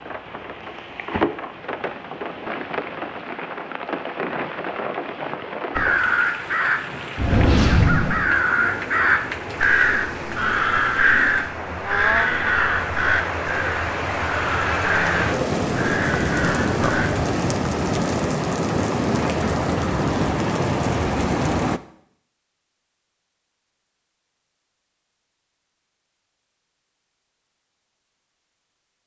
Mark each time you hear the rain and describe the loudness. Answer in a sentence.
You can hear the rain from 0.0 to 21.8 s, getting louder.